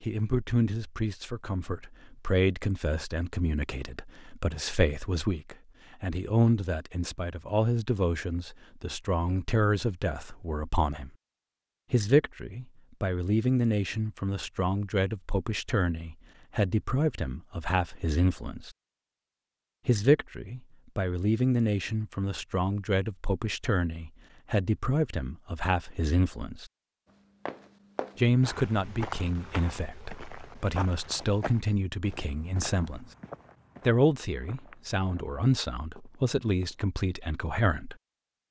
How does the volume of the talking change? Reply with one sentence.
The loudness of the talking stays about the same.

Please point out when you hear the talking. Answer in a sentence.
You can hear the talking from 0.0 to 11.1 s, from 11.9 to 18.7 s, from 19.9 to 26.7 s, from 28.1 to 33.0 s and from 33.8 to 38.0 s.